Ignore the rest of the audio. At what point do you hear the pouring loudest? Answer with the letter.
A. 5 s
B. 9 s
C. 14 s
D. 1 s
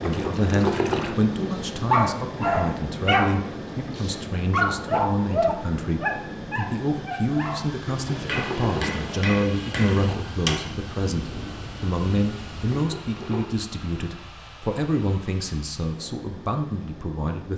D.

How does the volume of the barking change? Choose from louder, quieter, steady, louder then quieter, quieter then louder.
quieter.